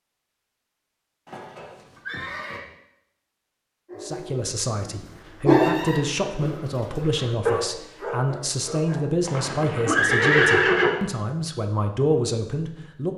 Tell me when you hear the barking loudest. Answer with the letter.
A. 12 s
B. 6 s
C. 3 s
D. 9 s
B.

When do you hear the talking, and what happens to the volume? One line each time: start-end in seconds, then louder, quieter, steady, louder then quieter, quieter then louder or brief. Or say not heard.
4.0-13.1 steady.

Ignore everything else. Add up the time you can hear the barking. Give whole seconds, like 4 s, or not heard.
5 s.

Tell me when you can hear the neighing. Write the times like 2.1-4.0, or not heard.
1.2-2.6, 5.5-6.8, 9.2-10.9.